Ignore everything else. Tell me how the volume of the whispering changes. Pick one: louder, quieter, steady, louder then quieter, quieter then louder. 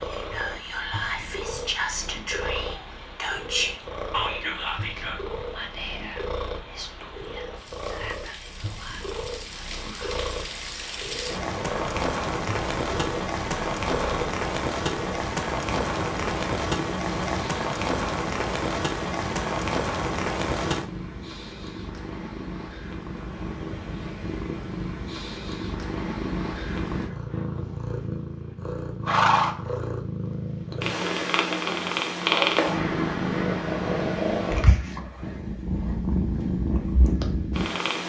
quieter.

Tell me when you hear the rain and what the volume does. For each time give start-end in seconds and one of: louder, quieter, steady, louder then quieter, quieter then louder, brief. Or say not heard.
0.0-20.9 louder.